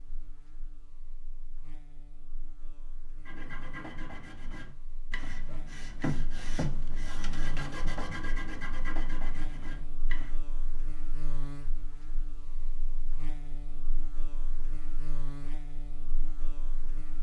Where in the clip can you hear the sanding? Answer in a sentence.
The sanding can be heard from 3.2 to 10.3 s.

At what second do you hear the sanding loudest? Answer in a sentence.
The loudest moment of the sanding is at 6 seconds.